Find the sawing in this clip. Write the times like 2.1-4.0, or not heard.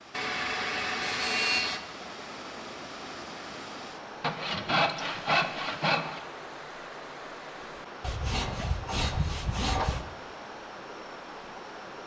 0.1-1.8, 4.2-6.2, 8.0-10.1.